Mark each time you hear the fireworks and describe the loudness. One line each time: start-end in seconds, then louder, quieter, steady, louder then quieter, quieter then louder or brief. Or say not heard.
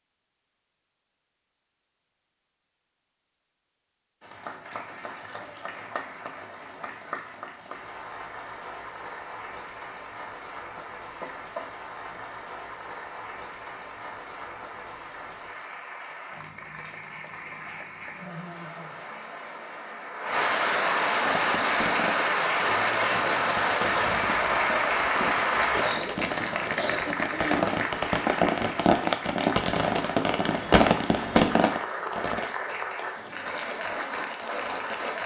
21.2-32.5 louder.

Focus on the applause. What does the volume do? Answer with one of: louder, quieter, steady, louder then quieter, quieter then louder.
louder then quieter.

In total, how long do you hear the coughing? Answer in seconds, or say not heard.
3 s.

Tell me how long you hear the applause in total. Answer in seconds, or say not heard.
31 s.